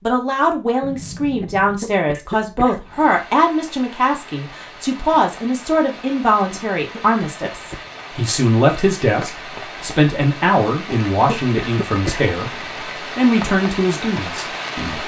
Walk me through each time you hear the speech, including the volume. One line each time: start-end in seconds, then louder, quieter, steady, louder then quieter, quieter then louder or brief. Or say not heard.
0.0-15.0 steady.